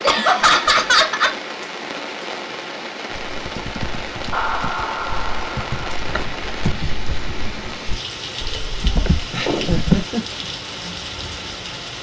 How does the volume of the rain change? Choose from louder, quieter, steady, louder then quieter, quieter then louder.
steady.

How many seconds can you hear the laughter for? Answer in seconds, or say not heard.
4 s.